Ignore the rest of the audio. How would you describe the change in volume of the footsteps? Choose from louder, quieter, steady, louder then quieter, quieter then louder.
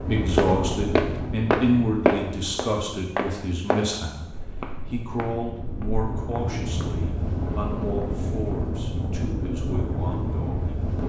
quieter.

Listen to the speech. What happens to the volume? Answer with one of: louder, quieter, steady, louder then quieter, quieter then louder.
quieter.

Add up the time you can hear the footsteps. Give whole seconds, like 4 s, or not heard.
7 s.